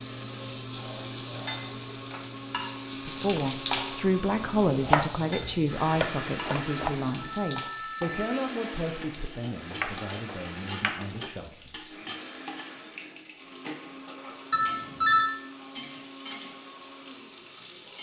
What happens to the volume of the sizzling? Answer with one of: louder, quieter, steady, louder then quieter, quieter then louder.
quieter.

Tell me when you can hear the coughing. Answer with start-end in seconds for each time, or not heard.
not heard.